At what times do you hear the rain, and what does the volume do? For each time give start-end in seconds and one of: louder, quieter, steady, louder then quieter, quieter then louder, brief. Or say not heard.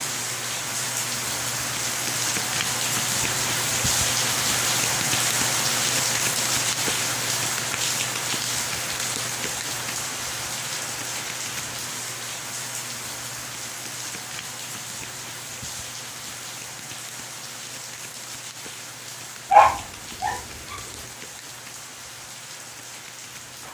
0.0-23.6 quieter.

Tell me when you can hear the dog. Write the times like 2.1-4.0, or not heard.
19.5-20.8.